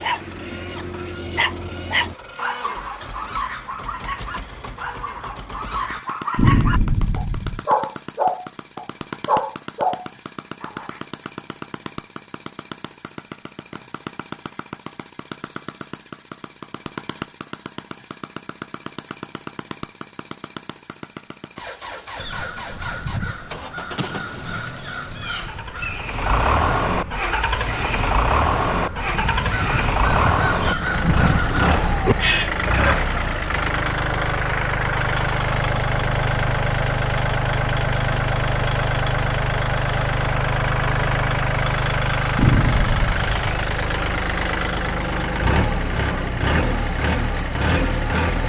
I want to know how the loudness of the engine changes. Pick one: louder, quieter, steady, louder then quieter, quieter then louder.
louder.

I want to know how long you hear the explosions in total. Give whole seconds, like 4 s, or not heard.
3 s.